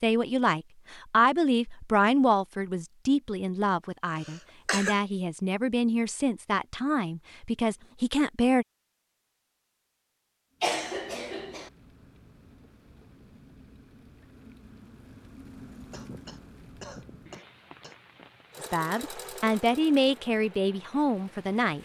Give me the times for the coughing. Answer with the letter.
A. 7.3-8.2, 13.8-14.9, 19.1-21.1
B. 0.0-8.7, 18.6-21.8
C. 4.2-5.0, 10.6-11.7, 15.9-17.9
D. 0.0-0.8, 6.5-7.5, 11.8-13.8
C.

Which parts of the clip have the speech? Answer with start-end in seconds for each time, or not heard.
0.0-8.7, 18.6-21.8.